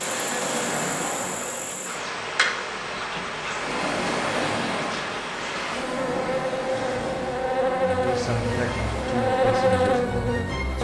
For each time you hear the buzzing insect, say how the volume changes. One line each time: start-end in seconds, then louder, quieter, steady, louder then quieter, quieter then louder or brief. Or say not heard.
0.0-10.7 louder.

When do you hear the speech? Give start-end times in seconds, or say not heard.
8.0-10.7.